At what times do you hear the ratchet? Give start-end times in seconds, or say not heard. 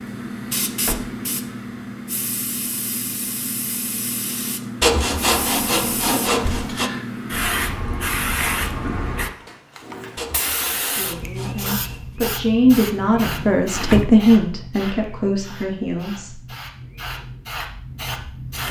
not heard.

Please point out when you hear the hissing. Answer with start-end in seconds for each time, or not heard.
0.0-18.6.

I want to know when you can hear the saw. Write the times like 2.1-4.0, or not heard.
4.8-6.9, 10.2-12.1.